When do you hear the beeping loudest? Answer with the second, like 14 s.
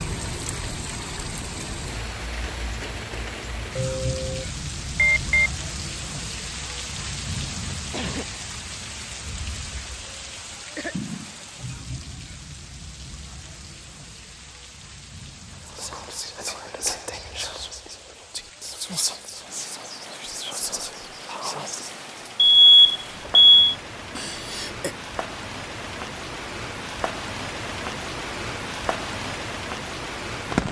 23 s.